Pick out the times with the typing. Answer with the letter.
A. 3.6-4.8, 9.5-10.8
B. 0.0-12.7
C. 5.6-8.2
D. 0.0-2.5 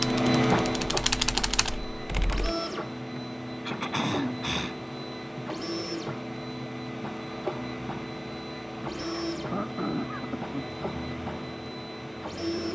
D.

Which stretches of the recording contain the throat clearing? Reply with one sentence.
You can hear the throat clearing from 3.6 to 4.8 s and from 9.5 to 10.8 s.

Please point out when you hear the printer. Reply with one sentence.
You can hear the printer from 0.0 to 12.7 s.